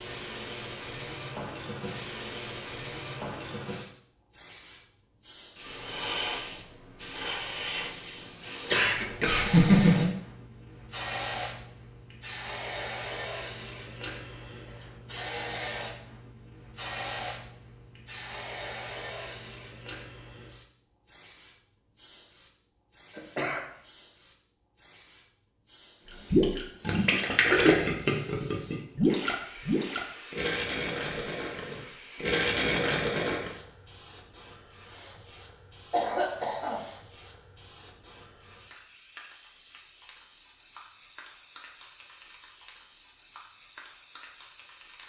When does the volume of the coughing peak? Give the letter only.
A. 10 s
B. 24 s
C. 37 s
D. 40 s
A.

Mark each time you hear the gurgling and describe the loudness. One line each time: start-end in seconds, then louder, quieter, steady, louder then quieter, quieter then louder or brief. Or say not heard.
26.3-33.5 quieter then louder.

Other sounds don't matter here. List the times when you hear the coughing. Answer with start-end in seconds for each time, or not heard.
8.7-10.1, 23.1-23.6, 35.9-36.8.